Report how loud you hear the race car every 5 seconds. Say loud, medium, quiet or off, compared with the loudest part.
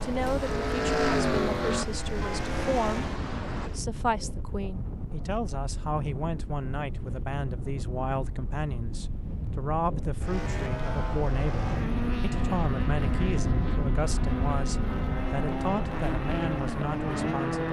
loud, off, medium, loud.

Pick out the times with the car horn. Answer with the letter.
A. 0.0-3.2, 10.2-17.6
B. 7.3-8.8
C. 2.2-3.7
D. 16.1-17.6
C.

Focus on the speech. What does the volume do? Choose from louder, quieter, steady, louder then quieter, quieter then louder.
steady.